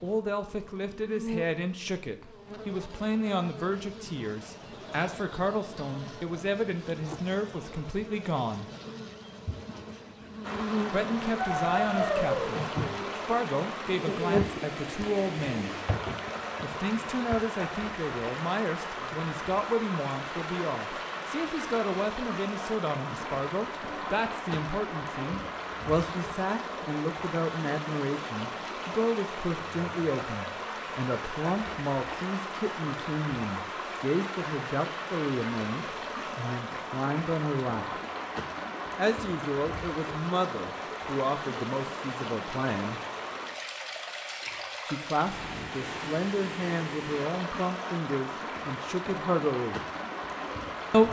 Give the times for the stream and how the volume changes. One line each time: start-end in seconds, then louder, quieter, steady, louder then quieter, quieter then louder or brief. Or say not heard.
10.4-51.0 steady.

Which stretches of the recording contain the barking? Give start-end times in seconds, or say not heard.
11.3-12.6.